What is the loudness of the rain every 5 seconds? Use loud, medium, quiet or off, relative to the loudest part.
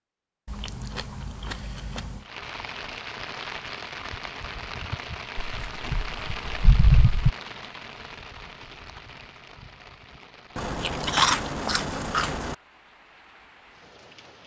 loud, loud, quiet.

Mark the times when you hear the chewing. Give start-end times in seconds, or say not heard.
0.5-2.2, 5.3-7.3, 10.6-12.6.